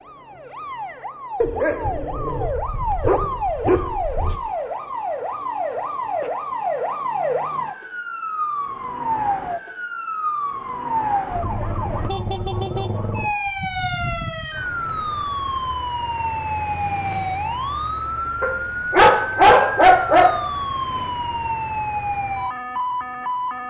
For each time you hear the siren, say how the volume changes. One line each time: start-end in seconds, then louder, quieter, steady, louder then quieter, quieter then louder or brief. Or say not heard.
0.0-23.6 steady.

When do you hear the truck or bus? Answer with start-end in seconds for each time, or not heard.
not heard.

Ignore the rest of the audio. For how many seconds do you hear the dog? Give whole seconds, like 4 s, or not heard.
5 s.